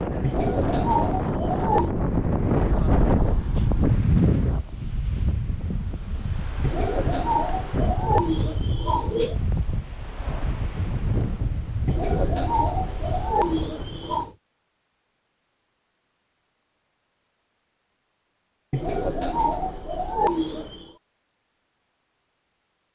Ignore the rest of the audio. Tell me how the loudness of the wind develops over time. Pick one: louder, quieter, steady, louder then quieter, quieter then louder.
quieter.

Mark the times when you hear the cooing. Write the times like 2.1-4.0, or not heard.
0.2-1.9, 6.6-9.3, 11.8-14.3, 18.7-20.9.